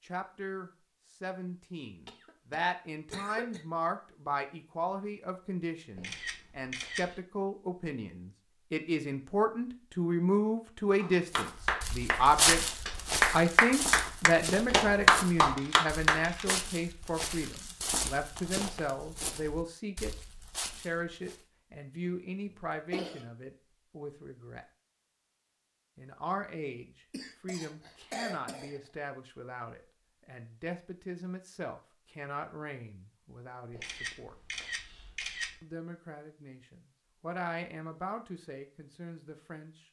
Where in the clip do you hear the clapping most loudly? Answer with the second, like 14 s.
15 s.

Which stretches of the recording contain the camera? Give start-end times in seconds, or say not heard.
6.0-7.2, 15.6-16.4, 33.7-35.5.